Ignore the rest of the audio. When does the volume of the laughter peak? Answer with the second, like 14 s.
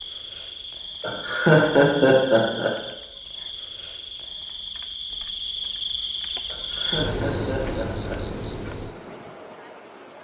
2 s.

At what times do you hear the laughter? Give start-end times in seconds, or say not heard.
1.0-2.8, 6.5-8.2.